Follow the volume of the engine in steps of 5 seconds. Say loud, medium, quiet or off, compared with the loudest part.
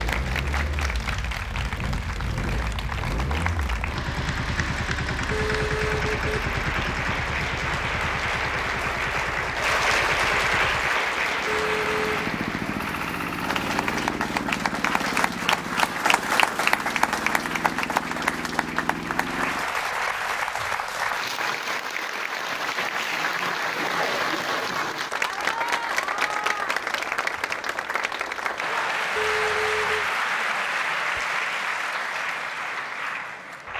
loud, loud, loud, loud, off, off, off.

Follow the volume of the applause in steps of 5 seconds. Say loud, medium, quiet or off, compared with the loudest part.
medium, loud, loud, loud, loud, loud, loud.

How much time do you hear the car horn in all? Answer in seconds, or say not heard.
3 s.